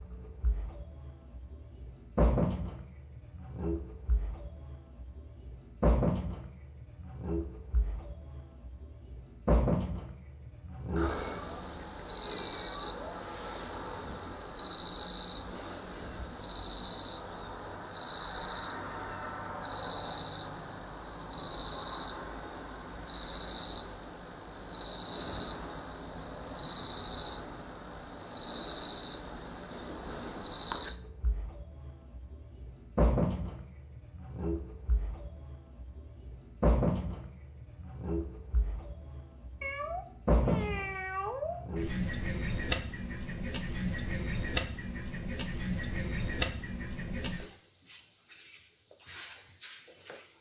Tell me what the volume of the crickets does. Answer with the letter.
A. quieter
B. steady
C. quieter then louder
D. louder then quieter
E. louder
B.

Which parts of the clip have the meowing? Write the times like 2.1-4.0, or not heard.
11.2-13.1, 39.6-41.6.